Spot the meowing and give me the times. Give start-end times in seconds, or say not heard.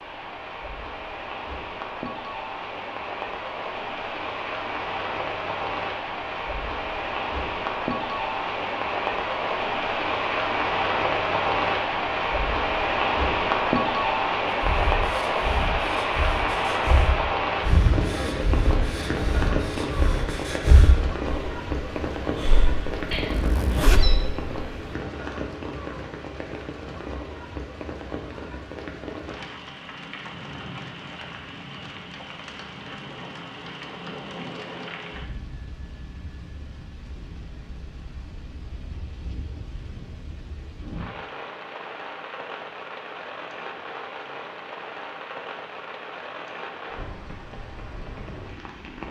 23.1-24.2.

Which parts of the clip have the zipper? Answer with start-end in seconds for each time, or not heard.
22.9-24.1.